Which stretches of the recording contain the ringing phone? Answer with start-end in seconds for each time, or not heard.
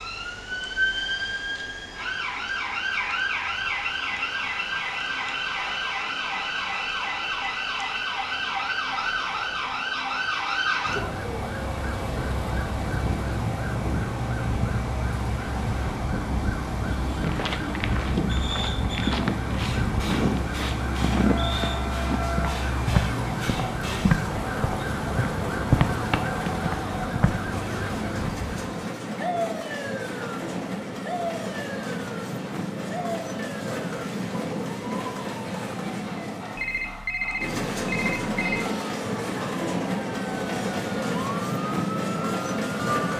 36.5-38.6.